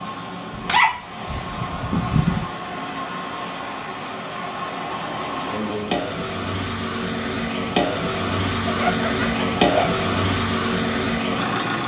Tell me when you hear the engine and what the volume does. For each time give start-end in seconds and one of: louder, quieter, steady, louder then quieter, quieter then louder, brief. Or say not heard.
0.0-11.8 louder.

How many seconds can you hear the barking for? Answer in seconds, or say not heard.
3 s.